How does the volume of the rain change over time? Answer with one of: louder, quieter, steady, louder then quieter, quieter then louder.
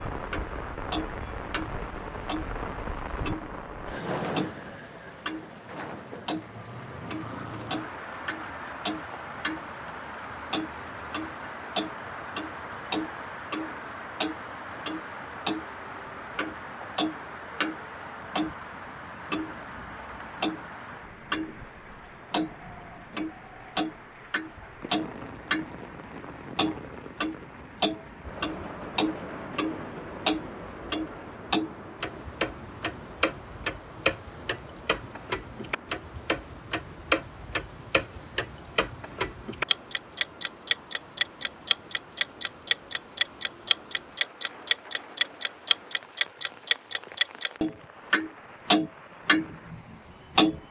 quieter.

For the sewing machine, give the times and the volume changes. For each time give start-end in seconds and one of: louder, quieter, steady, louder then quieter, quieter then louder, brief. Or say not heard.
not heard.